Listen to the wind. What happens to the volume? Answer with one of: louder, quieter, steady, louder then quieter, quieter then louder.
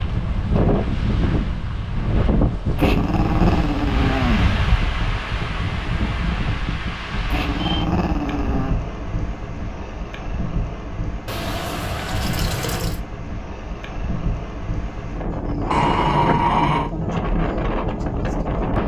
quieter then louder.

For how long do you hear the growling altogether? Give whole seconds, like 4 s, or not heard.
5 s.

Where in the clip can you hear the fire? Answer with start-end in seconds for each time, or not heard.
not heard.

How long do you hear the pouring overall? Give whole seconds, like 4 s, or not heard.
2 s.